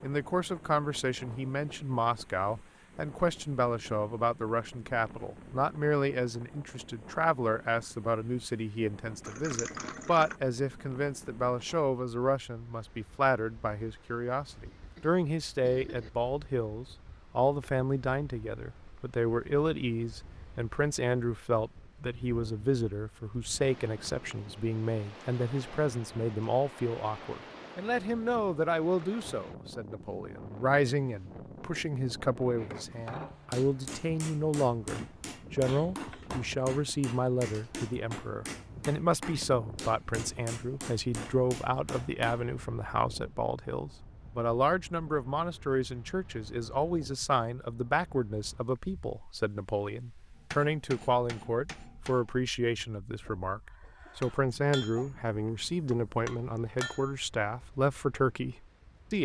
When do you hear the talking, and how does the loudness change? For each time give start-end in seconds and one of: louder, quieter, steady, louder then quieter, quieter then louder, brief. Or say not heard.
0.0-59.1 steady.